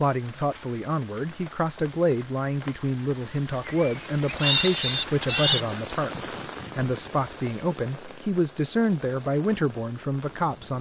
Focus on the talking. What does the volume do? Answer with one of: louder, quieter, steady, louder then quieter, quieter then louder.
steady.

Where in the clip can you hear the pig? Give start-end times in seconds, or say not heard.
3.6-5.7.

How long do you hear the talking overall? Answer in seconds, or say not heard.
10 s.